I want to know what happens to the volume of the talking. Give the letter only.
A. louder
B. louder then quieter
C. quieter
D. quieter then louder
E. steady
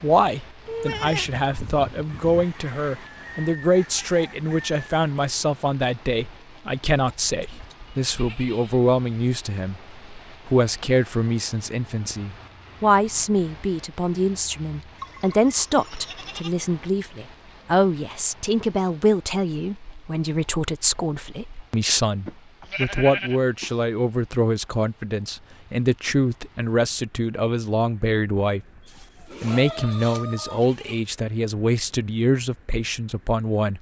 E.